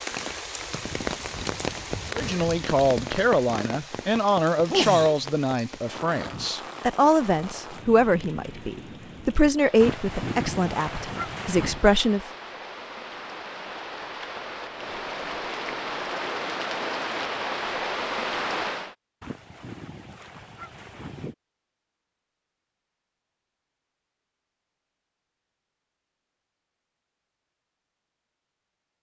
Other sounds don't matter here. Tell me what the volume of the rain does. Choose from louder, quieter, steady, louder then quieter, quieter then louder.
quieter then louder.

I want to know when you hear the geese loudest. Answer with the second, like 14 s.
10 s.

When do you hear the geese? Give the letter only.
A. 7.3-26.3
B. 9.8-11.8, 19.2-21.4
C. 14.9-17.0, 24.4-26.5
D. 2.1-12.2
B.